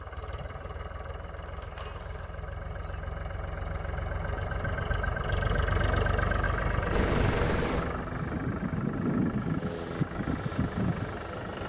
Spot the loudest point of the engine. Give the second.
6 s.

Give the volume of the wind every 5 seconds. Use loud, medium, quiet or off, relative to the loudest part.
off, loud, loud.